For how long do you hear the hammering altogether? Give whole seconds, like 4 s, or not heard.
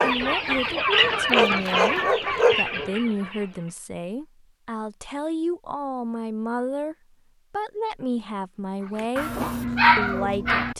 not heard.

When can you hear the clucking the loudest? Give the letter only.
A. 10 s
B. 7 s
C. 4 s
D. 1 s
D.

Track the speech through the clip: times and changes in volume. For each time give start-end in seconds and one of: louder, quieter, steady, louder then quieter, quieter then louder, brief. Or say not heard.
0.0-9.3 steady
9.9-10.7 brief.